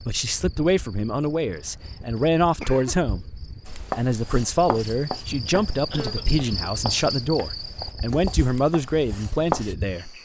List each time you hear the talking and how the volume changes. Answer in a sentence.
You can hear the talking from 0.1 to 10.1 s, at a steady volume.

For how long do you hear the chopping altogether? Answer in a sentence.
You can hear the chopping for 6 seconds altogether.